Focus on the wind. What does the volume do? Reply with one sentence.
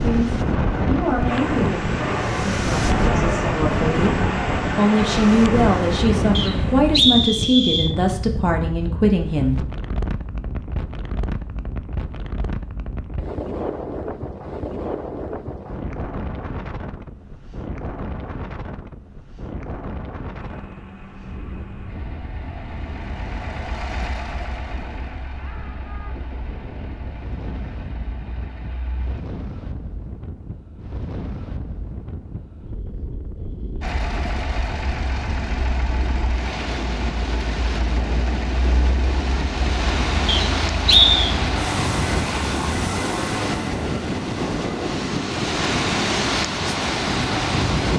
The volume of the wind goes down, then up.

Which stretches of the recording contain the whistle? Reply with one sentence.
You can hear the whistle from 6.3 to 7.9 s and from 40.2 to 41.4 s.